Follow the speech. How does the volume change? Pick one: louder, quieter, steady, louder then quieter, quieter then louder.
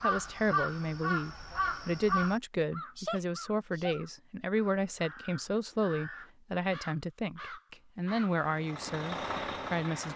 steady.